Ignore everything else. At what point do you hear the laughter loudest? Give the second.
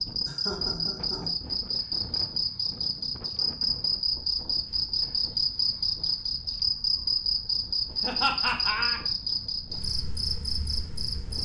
8 s.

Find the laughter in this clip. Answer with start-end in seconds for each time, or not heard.
0.2-1.3, 8.0-9.0.